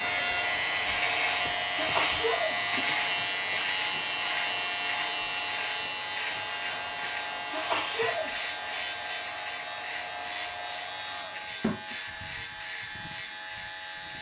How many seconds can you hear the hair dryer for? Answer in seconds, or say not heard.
14 s.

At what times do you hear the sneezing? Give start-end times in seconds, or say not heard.
1.8-2.5, 7.5-8.3.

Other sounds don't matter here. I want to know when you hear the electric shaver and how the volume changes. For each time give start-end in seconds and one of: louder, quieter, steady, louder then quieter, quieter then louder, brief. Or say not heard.
0.0-14.1 quieter.